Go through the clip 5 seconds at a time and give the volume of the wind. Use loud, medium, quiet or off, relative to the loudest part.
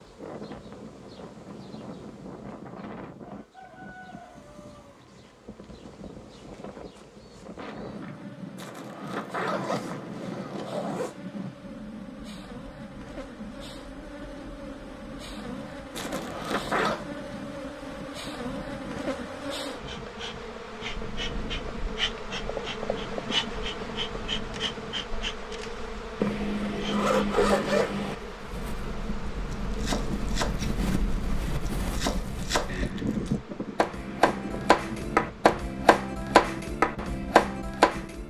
medium, medium, medium, medium, medium, medium, loud, medium.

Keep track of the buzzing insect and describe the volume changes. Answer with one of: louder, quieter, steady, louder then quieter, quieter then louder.
louder then quieter.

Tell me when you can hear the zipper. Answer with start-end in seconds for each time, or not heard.
8.6-11.2, 15.9-17.1, 26.2-28.1.